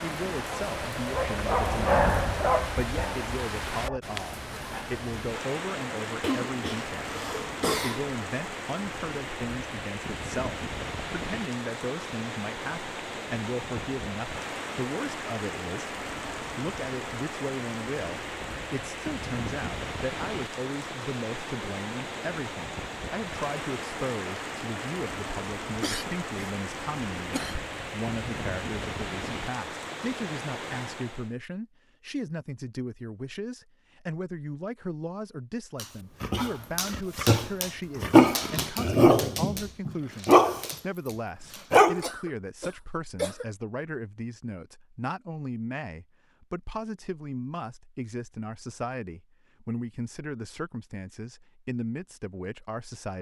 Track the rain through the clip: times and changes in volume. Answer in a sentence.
The rain can be heard from 0.0 to 31.4 s, at a steady volume.